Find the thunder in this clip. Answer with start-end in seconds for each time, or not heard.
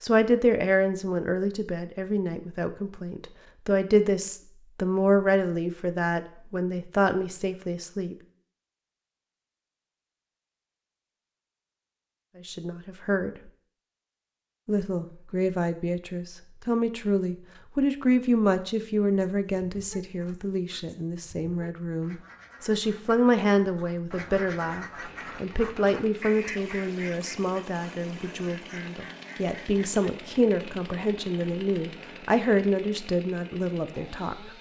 not heard.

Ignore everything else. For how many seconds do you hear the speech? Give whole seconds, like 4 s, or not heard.
29 s.